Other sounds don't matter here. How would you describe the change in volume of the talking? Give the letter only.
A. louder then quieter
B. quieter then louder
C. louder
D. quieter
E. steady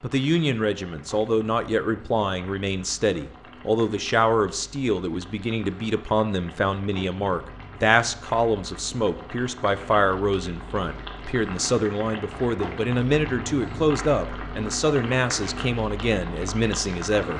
E.